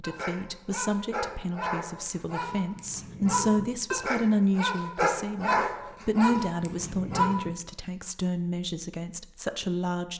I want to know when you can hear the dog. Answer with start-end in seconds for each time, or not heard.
0.0-7.5.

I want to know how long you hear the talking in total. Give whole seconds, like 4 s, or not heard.
10 s.